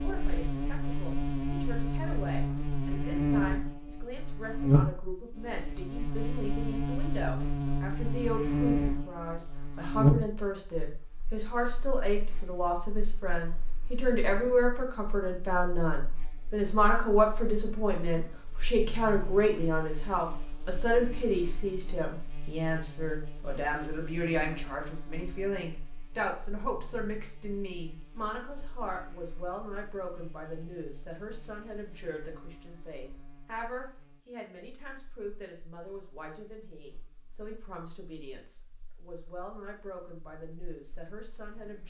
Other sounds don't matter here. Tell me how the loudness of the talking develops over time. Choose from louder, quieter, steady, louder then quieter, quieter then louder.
louder then quieter.